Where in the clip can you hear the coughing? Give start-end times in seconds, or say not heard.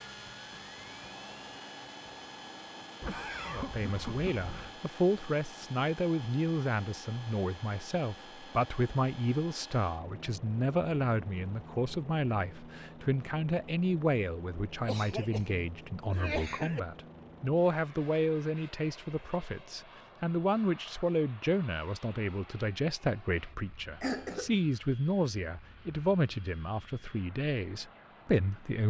3.0-4.8, 14.8-16.8, 24.0-24.5.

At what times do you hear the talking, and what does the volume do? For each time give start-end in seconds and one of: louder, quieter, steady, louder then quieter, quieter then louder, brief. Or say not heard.
3.5-28.8 steady.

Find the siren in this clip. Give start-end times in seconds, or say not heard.
not heard.